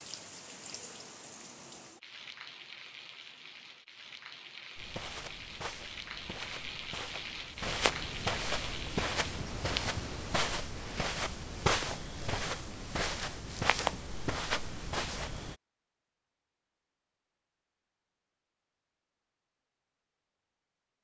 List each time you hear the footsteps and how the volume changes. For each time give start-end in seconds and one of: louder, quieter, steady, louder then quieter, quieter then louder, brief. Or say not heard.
4.8-15.6 louder.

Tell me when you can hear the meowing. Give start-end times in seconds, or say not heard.
not heard.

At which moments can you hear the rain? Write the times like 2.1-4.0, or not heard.
0.0-11.2.